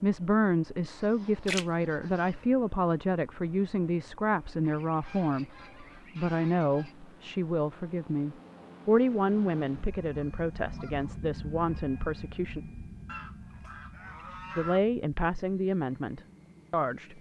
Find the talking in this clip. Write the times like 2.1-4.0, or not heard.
0.0-5.5, 6.2-12.6, 14.6-17.1.